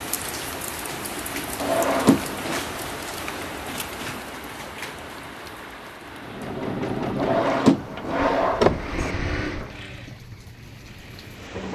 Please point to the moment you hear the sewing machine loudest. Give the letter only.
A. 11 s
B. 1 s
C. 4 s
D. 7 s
D.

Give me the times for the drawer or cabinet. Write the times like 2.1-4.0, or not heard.
1.6-2.6, 7.2-9.2.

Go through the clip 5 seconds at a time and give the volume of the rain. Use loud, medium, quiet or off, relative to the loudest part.
loud, medium, medium.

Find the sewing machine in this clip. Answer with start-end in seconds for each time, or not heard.
6.2-11.7.